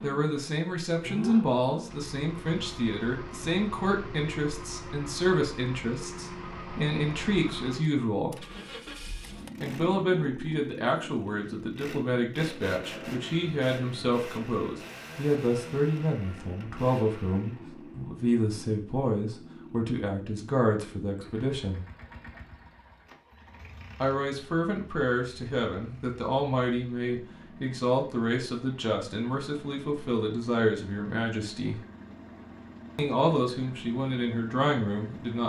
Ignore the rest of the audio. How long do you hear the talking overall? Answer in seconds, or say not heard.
31 s.